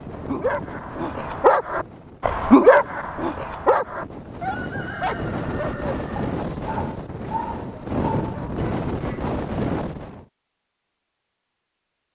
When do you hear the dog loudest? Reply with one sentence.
The loudest moment of the dog is at 3 seconds.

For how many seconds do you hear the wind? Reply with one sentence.
You can hear the wind for 10 seconds altogether.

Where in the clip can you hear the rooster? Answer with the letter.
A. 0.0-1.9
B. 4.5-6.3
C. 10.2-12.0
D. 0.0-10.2
B.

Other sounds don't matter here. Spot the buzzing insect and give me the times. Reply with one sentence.
The buzzing insect can't be heard in this clip.